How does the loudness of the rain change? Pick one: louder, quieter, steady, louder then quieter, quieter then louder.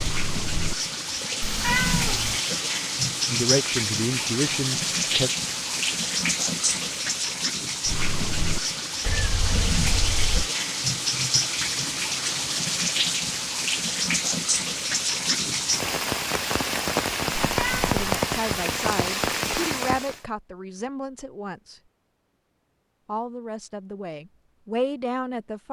steady.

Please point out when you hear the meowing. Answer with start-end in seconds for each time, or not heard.
1.4-2.4, 9.0-10.5, 17.4-18.0.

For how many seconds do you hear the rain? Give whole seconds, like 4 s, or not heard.
20 s.